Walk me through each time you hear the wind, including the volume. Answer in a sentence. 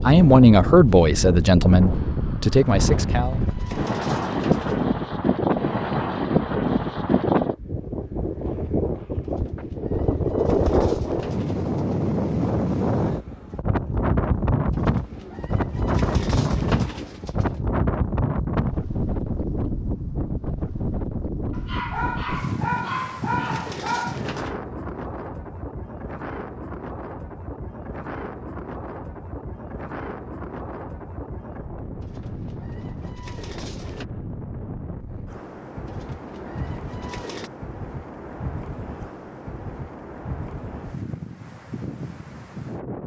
You can hear the wind from 0.0 to 43.0 s, getting quieter.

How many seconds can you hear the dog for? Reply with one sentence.
The dog can be heard for 3 seconds in total.